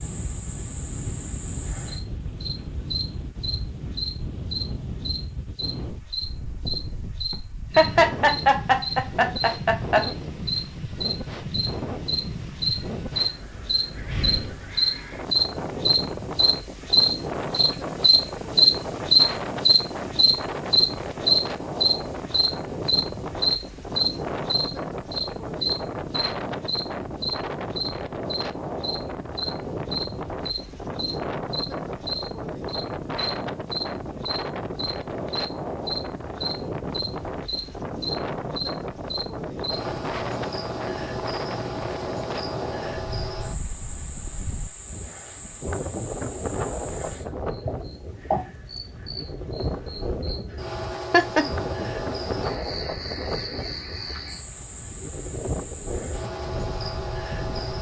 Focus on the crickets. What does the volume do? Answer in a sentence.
The loudness of the crickets goes up, then down.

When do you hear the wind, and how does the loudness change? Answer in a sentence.
The wind can be heard from 0.0 to 57.7 s, at a steady volume.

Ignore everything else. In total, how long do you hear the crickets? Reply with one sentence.
The crickets can be heard for 58 seconds in total.